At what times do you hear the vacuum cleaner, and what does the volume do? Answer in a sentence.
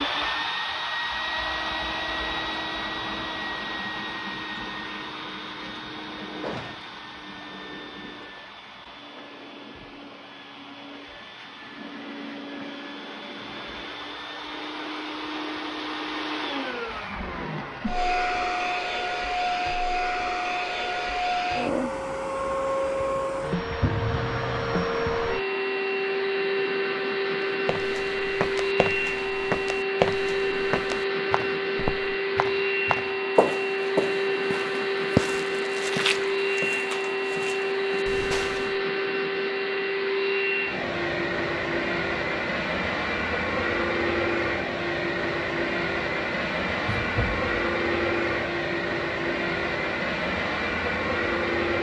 You can hear the vacuum cleaner from 0.0 to 51.7 s, getting louder.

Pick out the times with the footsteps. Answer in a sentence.
You can hear the footsteps from 27.6 to 38.7 s.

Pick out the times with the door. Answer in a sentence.
The door can be heard from 6.4 to 7.0 s and from 46.9 to 47.5 s.